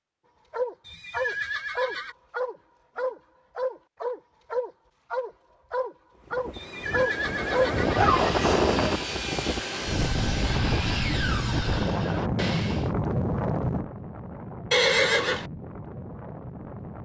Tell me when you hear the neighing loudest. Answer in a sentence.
The volume of the neighing peaks at 15 seconds.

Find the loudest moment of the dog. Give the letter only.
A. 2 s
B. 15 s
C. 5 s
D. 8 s
D.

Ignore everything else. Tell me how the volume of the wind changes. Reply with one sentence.
The loudness of the wind goes down.